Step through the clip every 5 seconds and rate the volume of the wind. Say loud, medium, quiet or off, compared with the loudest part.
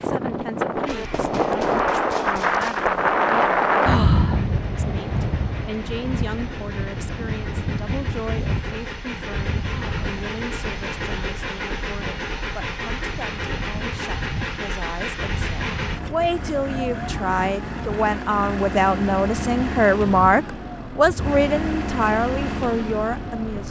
loud, medium, quiet, quiet, quiet.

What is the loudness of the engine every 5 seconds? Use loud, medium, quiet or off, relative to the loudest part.
medium, medium, loud, loud, loud.